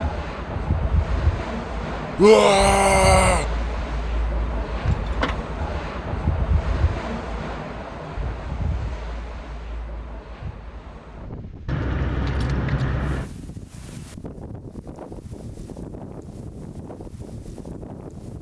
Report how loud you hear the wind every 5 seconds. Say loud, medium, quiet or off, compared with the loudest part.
loud, loud, medium, medium.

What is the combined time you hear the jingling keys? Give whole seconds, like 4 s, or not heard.
2 s.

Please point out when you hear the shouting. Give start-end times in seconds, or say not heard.
2.1-3.5.